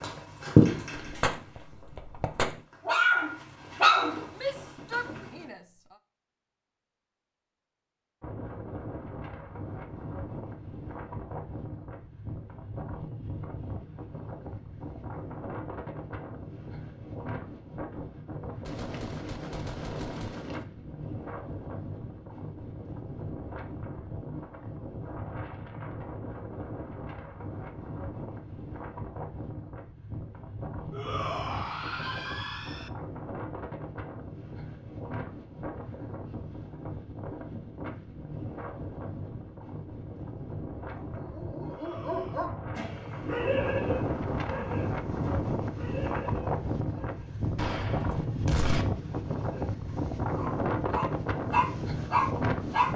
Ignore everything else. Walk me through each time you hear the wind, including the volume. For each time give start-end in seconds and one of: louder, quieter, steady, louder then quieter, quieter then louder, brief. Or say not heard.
8.2-52.9 louder.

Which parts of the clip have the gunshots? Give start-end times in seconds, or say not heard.
0.9-2.6, 18.6-20.6, 47.5-48.9.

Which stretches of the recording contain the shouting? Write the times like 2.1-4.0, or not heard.
4.3-6.0, 30.9-32.9, 41.7-42.5.